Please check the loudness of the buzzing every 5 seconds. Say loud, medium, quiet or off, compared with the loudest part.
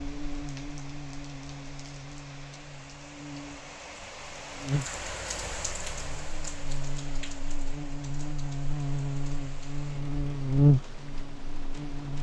quiet, medium, loud.